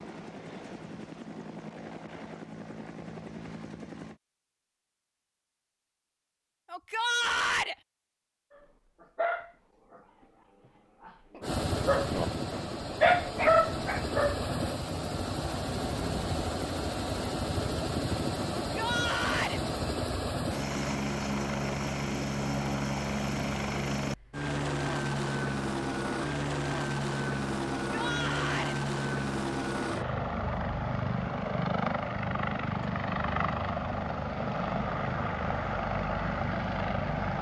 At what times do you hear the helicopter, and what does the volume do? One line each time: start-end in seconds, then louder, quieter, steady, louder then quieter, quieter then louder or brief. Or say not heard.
0.0-4.2 steady
11.4-37.3 steady.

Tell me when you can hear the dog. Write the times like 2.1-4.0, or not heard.
8.6-10.0, 11.0-14.4.